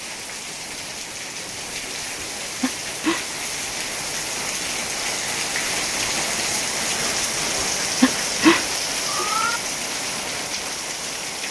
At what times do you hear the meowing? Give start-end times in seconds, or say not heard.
2.1-3.2, 7.5-9.6.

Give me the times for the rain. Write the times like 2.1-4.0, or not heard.
0.0-11.4.